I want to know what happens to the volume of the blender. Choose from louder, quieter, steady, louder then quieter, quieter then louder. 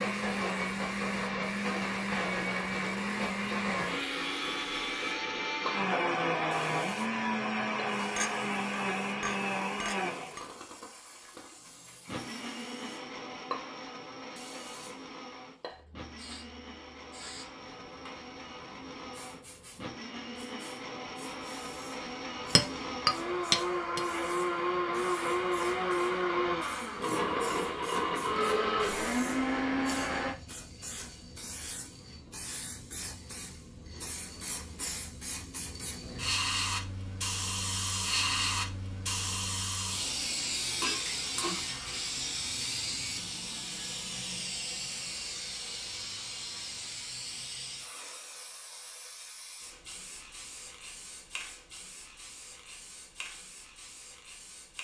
quieter then louder.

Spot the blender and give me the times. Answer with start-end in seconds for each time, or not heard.
0.0-30.4.